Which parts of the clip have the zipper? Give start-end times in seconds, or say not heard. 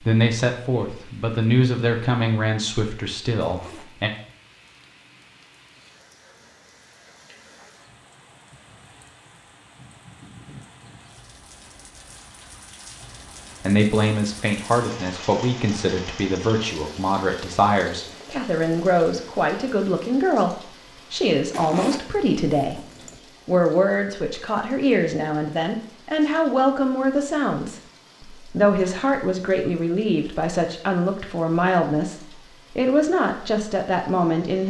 3.4-4.1, 21.5-23.2.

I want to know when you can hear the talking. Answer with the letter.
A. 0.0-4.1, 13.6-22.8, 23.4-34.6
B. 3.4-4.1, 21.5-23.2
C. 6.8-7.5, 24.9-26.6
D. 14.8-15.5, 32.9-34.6
A.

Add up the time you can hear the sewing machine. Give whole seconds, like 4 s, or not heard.
not heard.